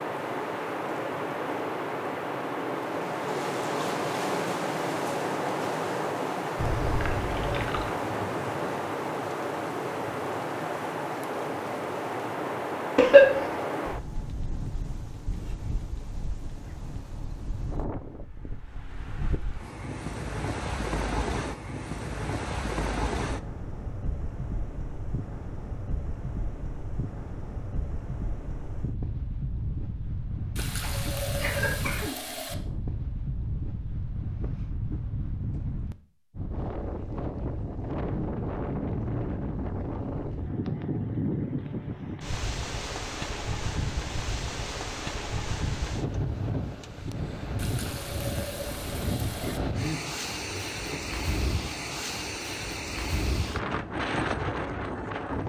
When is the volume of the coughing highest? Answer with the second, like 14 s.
13 s.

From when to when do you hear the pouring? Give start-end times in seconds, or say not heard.
6.5-8.0, 30.6-32.5, 47.5-49.6.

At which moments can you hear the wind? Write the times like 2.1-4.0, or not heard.
0.0-55.4.